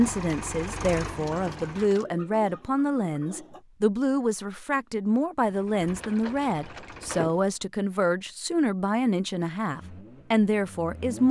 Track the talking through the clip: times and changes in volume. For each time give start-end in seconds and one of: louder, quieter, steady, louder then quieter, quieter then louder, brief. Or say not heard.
0.0-11.2 steady.